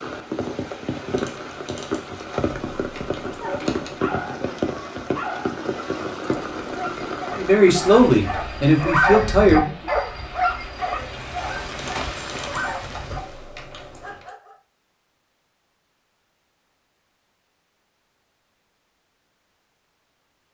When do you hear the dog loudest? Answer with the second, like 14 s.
9 s.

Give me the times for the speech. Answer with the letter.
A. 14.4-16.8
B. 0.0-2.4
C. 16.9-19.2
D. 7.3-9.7
D.